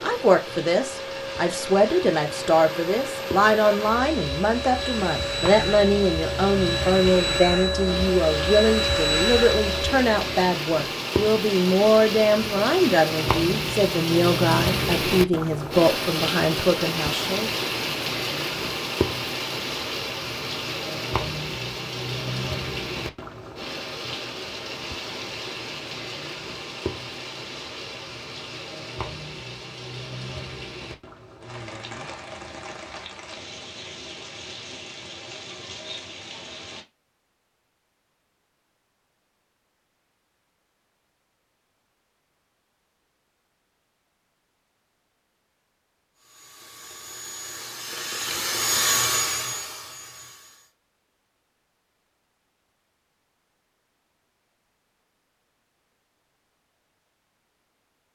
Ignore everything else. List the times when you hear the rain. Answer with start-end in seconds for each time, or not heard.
0.0-36.9.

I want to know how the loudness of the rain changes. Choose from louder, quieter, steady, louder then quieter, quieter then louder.
louder then quieter.